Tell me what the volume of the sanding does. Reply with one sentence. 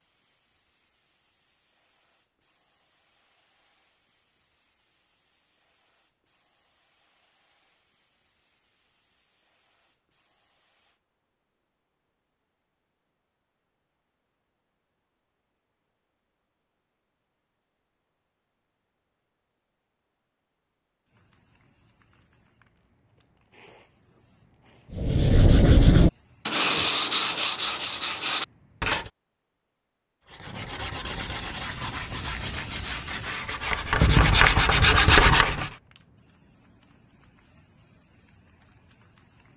The volume of the sanding goes down, then up.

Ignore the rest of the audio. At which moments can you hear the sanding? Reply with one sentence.
The sanding can be heard from 24.9 to 29.1 s and from 30.2 to 35.7 s.